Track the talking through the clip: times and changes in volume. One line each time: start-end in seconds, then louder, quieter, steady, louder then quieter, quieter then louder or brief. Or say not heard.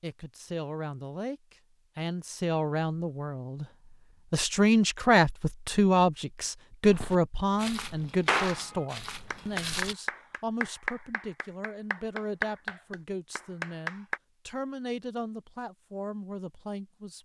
0.0-17.2 louder then quieter.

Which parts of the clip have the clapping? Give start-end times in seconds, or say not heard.
8.2-14.2.